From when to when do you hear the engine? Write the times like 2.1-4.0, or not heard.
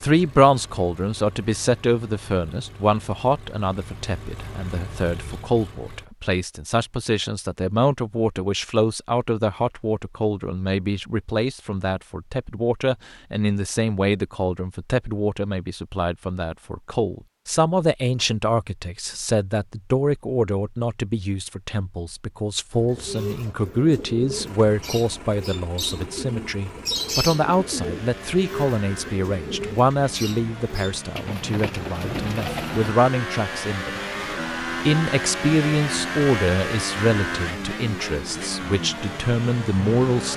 0.0-6.1, 24.3-40.3.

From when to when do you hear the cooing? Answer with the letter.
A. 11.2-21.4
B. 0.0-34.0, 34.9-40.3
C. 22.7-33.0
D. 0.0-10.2
C.